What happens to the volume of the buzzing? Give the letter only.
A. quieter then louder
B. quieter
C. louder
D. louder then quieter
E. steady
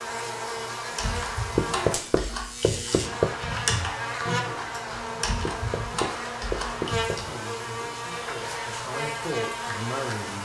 E.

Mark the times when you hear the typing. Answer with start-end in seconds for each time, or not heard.
0.9-7.3.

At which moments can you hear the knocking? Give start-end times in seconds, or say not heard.
1.6-3.4, 5.5-7.2.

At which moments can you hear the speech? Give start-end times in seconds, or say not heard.
7.2-10.4.